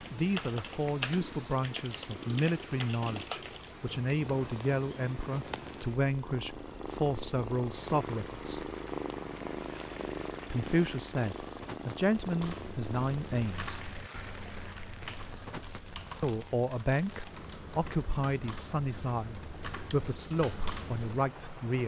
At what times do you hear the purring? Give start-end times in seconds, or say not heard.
0.0-13.6.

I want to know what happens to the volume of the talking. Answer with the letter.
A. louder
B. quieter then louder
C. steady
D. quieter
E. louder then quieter
C.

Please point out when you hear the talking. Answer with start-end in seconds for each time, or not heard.
0.1-8.7, 10.5-13.8, 16.2-21.8.